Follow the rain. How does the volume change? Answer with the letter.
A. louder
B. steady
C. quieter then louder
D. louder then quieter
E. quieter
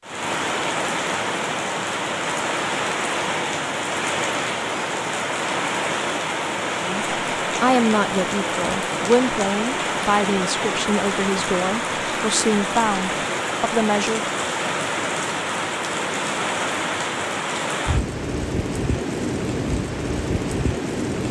B.